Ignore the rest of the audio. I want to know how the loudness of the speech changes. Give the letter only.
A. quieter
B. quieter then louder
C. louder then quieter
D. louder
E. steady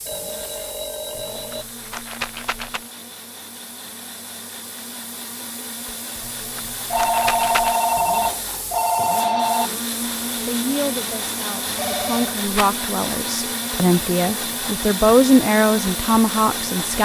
D.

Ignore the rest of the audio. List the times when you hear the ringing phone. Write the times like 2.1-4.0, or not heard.
0.1-1.6, 6.9-9.7, 11.7-12.3.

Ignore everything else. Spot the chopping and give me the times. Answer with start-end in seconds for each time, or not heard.
not heard.